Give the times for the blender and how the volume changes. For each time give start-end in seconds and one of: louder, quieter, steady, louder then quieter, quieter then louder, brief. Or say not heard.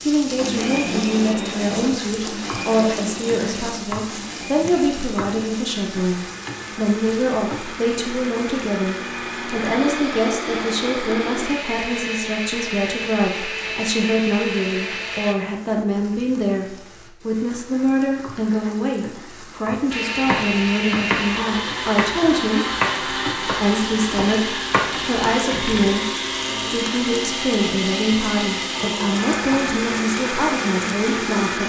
0.0-15.3 quieter then louder
19.9-31.6 steady.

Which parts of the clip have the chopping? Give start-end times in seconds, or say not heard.
20.2-25.9.